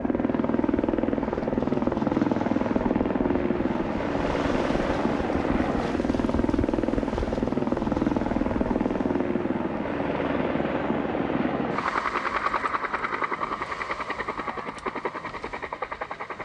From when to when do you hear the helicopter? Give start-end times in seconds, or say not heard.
0.0-16.3.